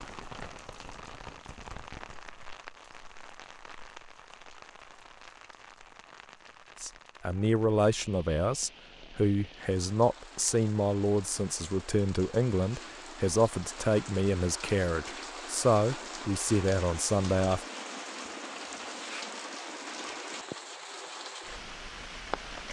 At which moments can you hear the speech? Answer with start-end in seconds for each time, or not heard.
6.8-17.6.